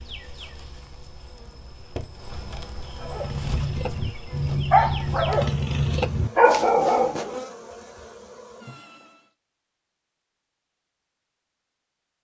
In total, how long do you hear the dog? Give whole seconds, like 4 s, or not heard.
4 s.